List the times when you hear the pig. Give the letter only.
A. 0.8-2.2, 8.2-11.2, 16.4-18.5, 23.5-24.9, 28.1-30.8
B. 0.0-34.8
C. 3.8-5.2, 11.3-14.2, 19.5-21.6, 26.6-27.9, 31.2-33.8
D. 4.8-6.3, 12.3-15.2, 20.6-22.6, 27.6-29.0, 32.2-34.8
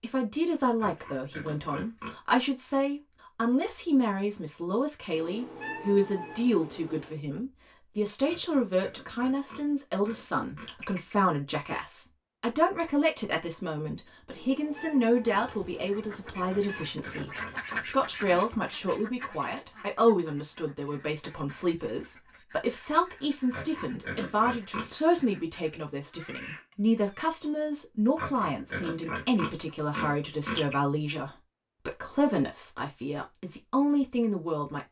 A.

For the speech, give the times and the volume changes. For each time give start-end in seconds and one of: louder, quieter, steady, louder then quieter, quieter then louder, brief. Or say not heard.
0.0-34.8 steady.